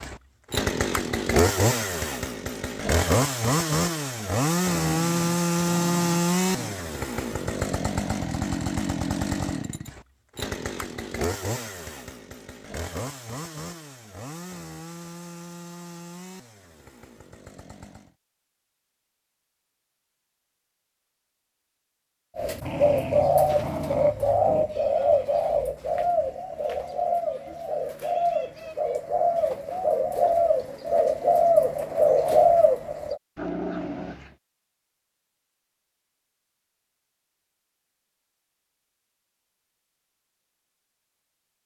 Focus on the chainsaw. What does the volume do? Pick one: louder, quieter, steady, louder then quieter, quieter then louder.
quieter.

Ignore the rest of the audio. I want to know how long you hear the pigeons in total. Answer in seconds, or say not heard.
11 s.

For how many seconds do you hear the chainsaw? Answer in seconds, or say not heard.
18 s.